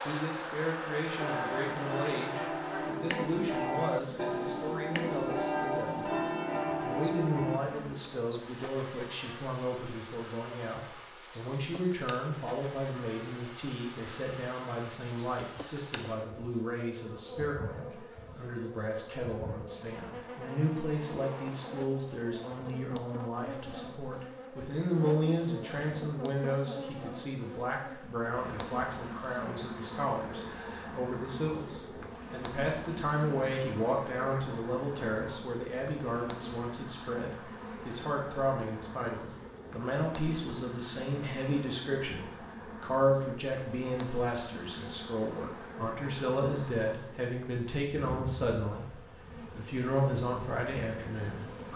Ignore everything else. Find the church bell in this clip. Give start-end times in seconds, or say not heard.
1.1-7.6.